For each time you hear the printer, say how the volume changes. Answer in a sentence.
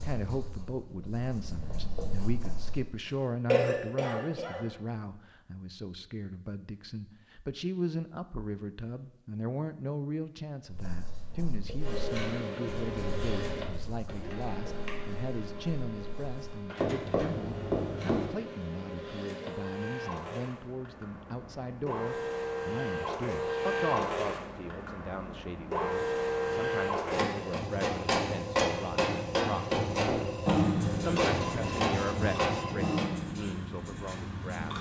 You can hear the printer from 11.8 to 33.0 s, getting louder.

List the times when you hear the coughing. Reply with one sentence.
You can hear the coughing from 3.5 to 4.7 s.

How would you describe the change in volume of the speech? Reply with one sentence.
The volume of the speech stays about the same.